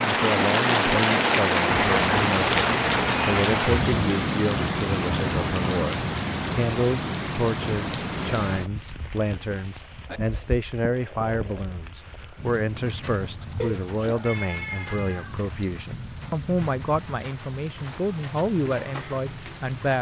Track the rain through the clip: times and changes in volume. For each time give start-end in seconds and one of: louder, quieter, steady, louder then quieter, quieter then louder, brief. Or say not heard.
0.0-19.9 quieter.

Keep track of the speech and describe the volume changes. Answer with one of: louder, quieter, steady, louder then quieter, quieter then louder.
steady.